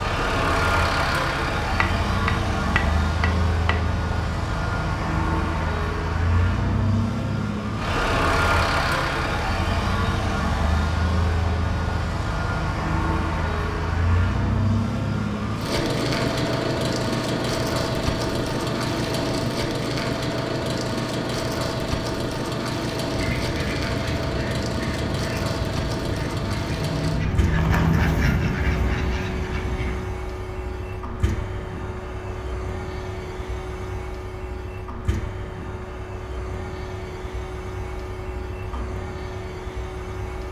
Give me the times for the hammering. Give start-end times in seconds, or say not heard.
1.8-3.9.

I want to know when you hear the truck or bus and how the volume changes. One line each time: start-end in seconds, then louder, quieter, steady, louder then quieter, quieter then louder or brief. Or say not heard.
0.0-40.4 quieter.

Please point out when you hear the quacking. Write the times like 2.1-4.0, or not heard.
23.1-30.0.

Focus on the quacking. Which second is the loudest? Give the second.
28 s.